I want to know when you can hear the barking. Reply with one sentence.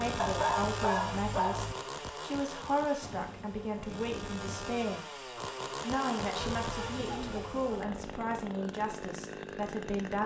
The barking can be heard from 0.1 to 1.8 s and from 6.2 to 8.0 s.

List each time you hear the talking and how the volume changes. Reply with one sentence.
You can hear the talking from 0.0 to 10.2 s, at a steady volume.